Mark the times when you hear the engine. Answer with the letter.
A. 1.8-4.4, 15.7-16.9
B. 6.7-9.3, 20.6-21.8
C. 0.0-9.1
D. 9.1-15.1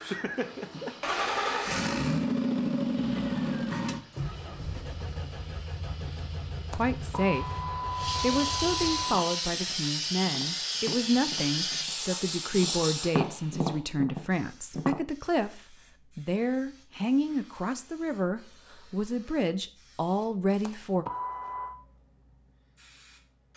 C.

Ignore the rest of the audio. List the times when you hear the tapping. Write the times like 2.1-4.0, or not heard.
9.1-15.1.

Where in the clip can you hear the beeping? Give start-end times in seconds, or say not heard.
6.7-9.3, 20.6-21.8.